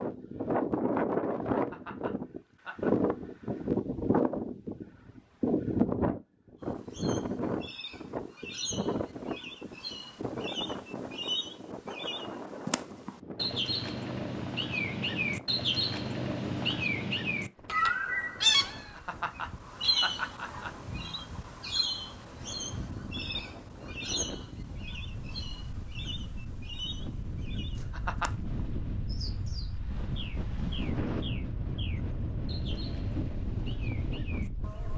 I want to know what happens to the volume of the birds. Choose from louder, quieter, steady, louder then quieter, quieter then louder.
louder then quieter.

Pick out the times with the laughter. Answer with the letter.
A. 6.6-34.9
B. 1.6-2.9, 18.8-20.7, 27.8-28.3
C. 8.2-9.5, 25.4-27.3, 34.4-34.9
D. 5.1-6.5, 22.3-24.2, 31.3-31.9
B.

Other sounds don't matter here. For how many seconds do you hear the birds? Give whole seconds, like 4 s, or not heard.
28 s.